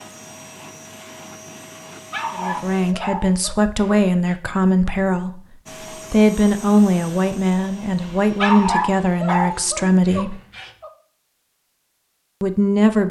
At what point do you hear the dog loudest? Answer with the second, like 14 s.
9 s.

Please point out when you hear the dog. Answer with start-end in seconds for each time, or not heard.
2.1-4.3, 8.3-10.9.